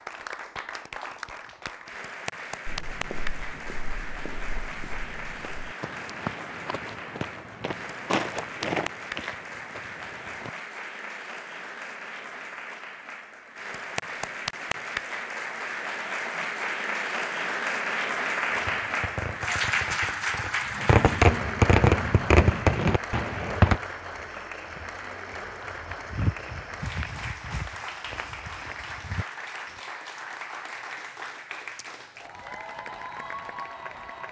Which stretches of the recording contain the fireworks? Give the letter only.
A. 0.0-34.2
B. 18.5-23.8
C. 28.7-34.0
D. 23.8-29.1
B.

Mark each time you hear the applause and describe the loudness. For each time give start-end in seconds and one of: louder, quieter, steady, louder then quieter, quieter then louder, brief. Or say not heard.
0.0-34.2 louder then quieter.